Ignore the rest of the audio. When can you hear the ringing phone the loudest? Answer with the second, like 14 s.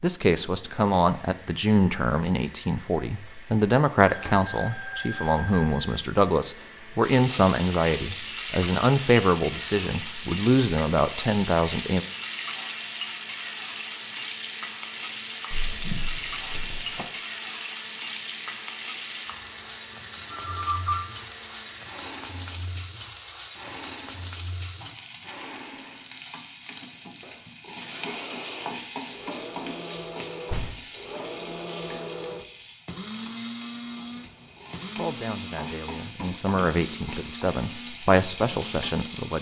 21 s.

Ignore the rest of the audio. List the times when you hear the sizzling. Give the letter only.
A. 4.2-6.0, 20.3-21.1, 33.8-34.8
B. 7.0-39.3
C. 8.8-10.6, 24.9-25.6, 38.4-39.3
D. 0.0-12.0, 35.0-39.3
B.